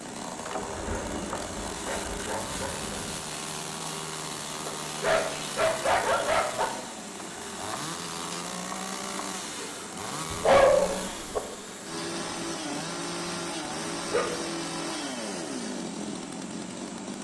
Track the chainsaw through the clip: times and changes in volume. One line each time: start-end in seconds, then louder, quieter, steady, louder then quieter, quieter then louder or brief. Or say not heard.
0.0-17.1 steady.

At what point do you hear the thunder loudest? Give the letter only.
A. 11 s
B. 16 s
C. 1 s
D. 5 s
C.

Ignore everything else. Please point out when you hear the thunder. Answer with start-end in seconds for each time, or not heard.
0.6-3.3.